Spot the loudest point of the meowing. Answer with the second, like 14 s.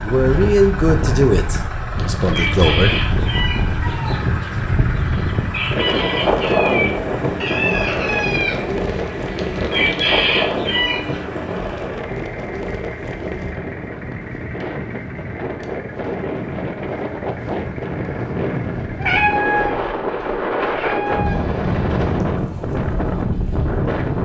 19 s.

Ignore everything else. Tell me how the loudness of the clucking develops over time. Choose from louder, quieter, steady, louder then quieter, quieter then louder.
quieter then louder.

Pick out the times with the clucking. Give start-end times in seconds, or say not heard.
1.9-11.2.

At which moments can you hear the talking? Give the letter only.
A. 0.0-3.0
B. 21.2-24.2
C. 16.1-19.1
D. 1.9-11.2
A.